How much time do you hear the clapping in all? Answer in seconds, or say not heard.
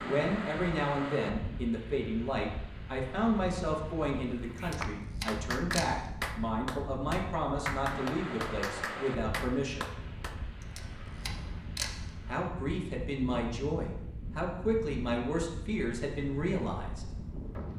6 s.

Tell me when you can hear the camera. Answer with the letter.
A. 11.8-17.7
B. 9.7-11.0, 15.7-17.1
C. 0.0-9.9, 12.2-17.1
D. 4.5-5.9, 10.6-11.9
D.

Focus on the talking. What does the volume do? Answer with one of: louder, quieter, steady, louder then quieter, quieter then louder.
steady.